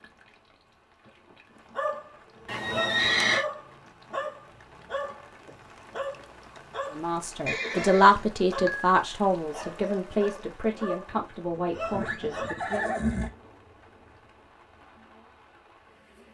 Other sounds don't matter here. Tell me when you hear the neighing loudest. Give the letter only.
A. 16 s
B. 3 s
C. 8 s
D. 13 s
B.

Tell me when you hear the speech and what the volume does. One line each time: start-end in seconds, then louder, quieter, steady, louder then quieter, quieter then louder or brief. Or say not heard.
6.9-12.9 quieter.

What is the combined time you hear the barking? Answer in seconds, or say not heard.
10 s.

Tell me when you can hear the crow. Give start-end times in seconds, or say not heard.
not heard.